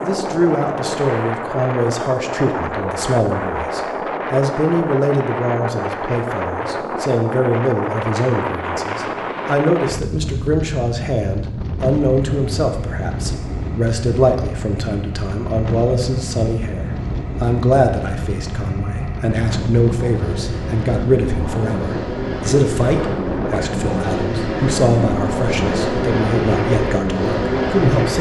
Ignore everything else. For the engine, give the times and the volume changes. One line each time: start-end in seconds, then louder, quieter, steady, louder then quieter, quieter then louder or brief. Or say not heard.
12.2-28.1 louder.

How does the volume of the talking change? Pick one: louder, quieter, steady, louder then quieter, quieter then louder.
steady.